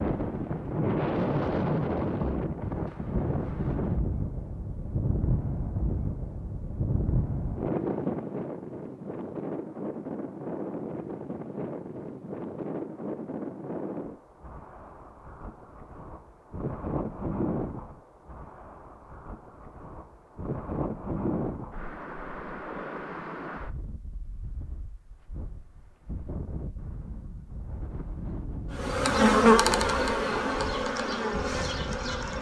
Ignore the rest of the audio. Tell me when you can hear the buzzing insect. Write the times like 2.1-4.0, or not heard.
28.8-32.3.